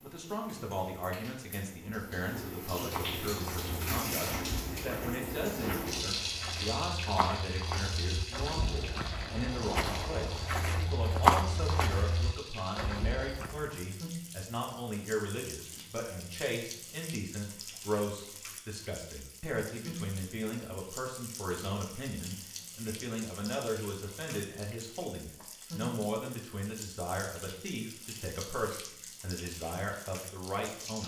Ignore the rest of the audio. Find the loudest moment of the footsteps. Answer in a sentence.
The volume of the footsteps peaks at 11 seconds.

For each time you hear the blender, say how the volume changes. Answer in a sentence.
The blender can't be heard in this clip.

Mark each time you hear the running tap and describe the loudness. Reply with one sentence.
You can hear the running tap from 0.0 to 31.0 s, getting quieter.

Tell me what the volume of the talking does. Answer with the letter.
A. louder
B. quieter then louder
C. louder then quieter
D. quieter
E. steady
E.